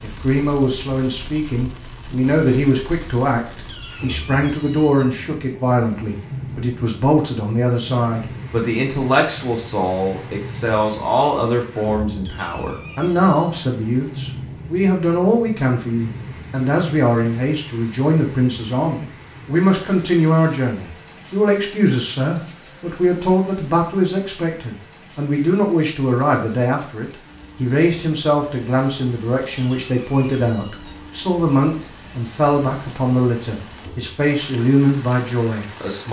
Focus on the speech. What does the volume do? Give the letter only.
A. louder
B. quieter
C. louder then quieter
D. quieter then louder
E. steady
E.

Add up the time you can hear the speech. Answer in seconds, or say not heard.
36 s.